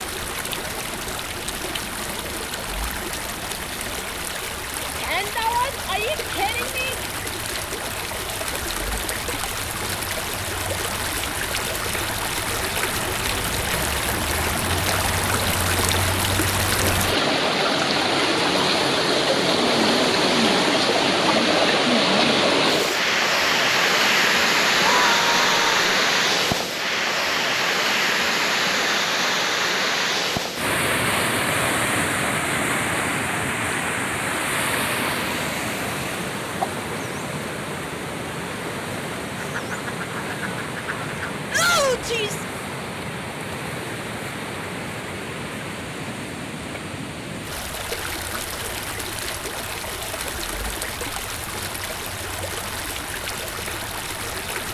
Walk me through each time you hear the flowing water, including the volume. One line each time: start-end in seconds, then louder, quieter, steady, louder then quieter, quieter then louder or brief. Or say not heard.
0.0-54.6 louder then quieter.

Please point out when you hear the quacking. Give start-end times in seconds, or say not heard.
39.4-41.4.